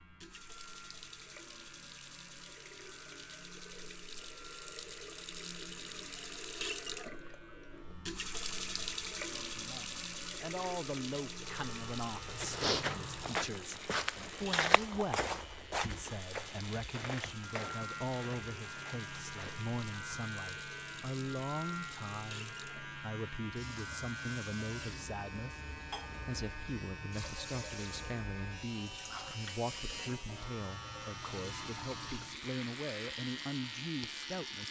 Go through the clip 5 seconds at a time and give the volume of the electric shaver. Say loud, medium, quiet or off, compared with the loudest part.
quiet, quiet, medium, loud, loud, loud, loud.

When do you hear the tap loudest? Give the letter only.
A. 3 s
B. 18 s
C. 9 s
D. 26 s
C.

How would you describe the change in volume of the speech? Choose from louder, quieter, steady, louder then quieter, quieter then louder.
steady.